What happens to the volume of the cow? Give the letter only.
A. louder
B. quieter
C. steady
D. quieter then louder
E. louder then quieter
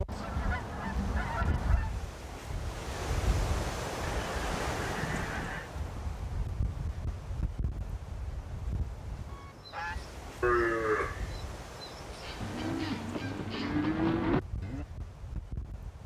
D.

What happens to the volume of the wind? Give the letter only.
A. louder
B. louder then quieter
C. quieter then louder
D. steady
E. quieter
E.